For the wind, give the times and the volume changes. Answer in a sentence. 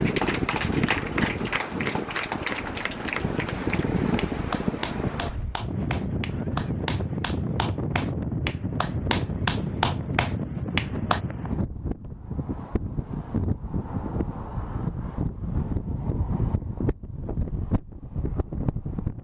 The wind can be heard from 0.0 to 19.1 s, at a steady volume.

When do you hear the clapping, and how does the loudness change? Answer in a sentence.
The clapping can be heard from 0.1 to 11.2 s, getting quieter then louder.